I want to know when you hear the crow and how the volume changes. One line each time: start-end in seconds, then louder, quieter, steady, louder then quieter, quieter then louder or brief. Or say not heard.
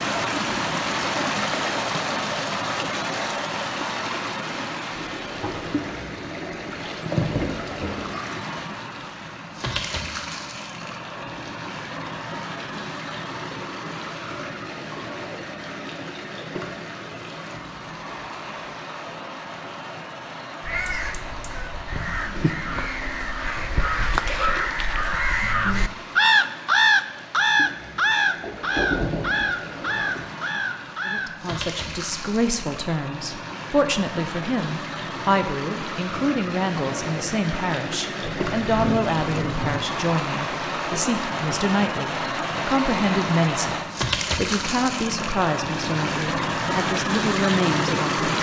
20.6-31.6 louder then quieter.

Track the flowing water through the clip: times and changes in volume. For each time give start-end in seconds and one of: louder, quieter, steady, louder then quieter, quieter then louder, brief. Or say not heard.
0.0-48.3 quieter then louder.